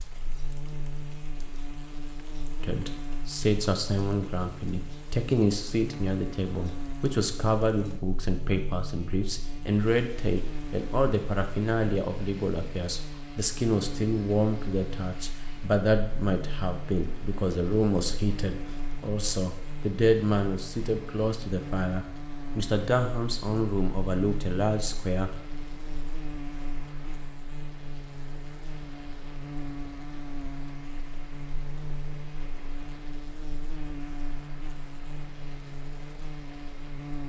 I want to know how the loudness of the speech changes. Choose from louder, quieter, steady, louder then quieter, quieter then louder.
steady.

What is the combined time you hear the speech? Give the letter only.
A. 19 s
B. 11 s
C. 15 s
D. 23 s
D.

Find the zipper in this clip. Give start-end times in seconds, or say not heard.
not heard.